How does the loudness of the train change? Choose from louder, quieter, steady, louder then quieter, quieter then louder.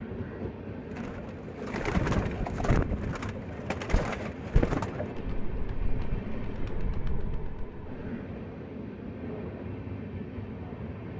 steady.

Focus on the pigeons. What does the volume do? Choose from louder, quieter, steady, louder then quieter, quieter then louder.
quieter.